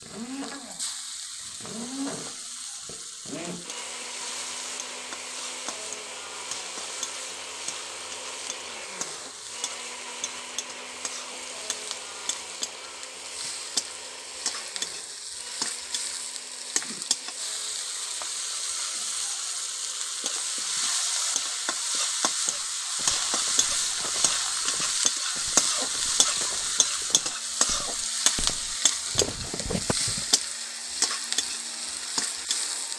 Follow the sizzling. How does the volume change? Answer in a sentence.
The loudness of the sizzling goes up.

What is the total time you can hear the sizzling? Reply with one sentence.
You can hear the sizzling for 33 seconds altogether.